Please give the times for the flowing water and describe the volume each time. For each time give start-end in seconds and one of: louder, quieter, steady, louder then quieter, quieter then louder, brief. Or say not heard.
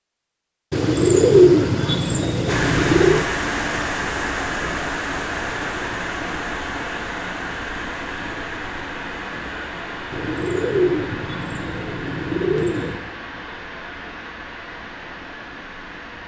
2.5-16.2 quieter.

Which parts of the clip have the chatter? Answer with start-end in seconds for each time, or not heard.
not heard.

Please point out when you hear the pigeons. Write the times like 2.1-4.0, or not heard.
0.7-3.2, 10.1-13.0.